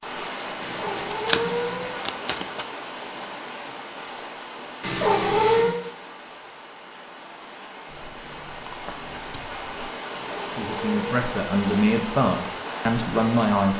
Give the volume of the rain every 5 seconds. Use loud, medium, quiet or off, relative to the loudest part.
loud, medium, loud.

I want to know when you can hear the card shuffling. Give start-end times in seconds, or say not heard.
0.8-2.6, 7.9-9.9.